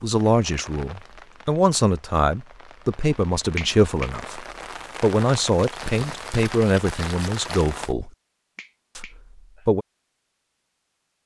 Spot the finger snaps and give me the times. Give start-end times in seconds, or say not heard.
3.5-4.1, 8.6-9.7.